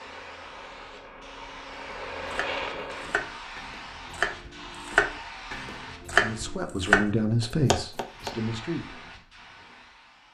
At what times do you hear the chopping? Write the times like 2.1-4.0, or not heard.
1.7-8.3.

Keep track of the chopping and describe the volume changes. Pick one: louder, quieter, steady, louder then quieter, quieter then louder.
louder.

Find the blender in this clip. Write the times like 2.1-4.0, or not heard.
0.0-3.3.